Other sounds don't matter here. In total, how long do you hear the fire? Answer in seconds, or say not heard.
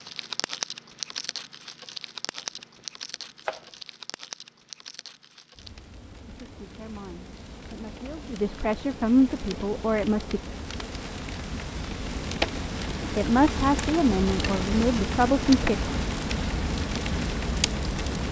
18 s.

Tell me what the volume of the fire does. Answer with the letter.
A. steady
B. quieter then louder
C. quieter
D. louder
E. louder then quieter
B.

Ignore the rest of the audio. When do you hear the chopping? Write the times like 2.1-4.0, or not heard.
2.4-3.7.